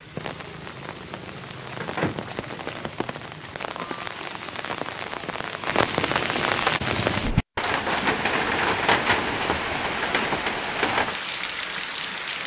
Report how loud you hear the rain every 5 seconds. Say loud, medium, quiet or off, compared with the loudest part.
medium, loud, loud.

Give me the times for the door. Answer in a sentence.
The door can be heard from 1.8 to 2.2 s.